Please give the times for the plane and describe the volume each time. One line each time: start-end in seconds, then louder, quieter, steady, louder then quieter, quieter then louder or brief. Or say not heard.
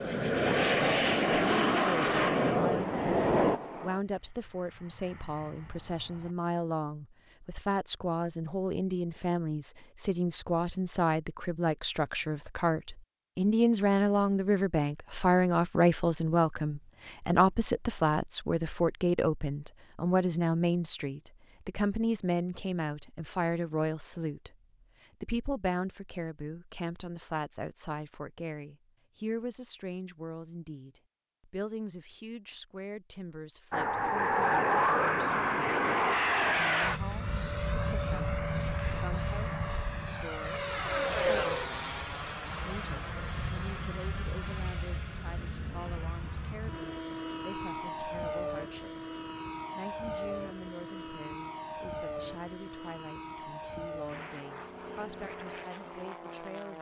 0.0-6.3 quieter
33.7-56.7 quieter.